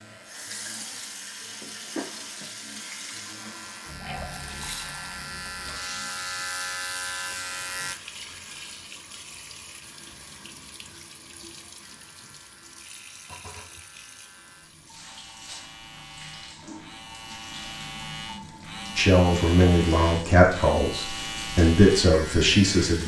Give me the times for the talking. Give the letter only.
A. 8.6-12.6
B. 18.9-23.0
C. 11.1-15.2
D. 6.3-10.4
B.